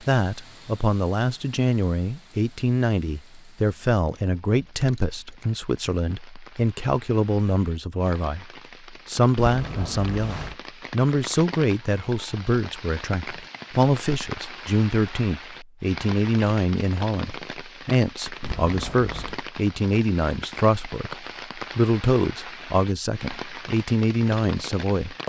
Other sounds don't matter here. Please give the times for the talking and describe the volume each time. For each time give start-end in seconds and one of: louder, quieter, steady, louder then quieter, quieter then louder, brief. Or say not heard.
0.1-25.2 steady.